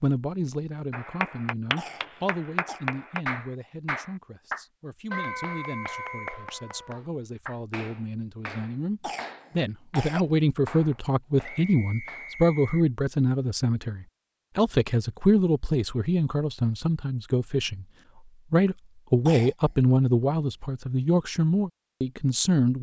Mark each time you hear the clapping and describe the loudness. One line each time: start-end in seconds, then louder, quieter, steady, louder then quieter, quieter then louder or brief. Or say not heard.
0.9-12.3 quieter.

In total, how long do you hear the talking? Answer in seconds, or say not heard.
22 s.